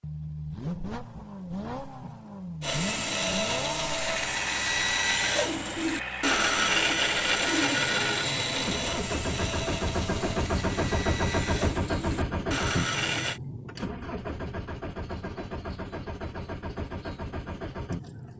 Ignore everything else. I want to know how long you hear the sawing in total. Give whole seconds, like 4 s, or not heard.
11 s.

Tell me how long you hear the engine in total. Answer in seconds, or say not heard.
18 s.